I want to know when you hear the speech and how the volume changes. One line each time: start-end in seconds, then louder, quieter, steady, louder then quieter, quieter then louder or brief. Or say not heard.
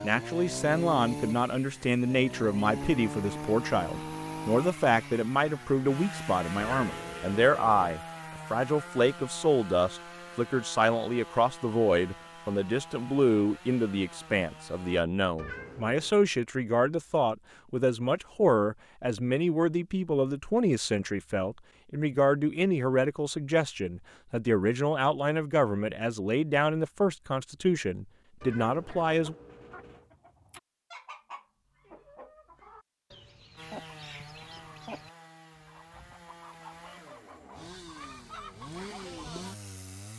0.0-29.4 steady.